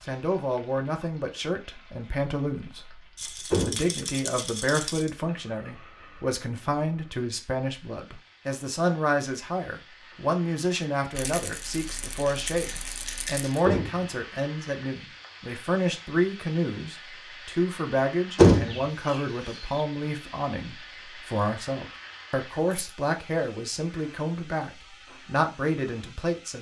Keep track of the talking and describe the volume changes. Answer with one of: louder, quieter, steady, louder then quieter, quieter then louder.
steady.